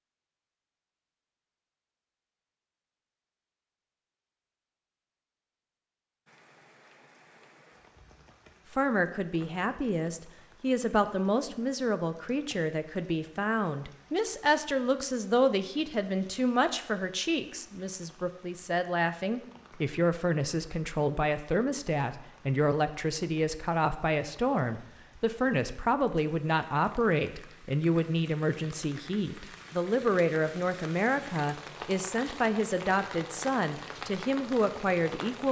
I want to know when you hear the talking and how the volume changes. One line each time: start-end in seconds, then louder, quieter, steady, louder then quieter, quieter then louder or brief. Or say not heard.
8.7-35.4 steady.